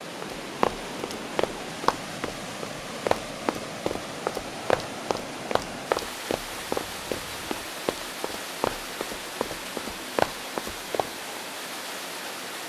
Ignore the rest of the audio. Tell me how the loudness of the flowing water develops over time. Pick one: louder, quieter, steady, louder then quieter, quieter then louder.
steady.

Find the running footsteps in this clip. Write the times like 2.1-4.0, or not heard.
0.2-11.4.